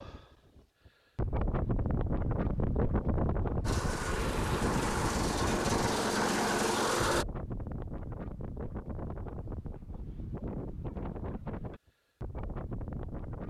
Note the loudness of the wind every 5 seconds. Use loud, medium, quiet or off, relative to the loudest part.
loud, medium, medium.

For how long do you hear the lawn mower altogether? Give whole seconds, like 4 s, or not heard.
4 s.